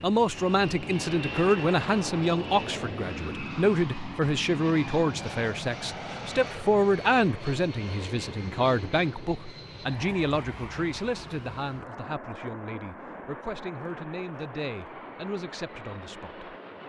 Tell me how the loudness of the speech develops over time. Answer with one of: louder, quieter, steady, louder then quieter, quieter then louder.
quieter.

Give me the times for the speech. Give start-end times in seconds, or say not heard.
0.0-16.8.